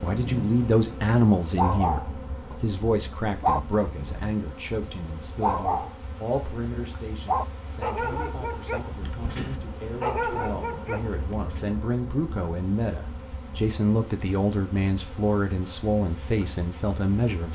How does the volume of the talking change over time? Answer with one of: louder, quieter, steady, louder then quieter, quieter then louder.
quieter then louder.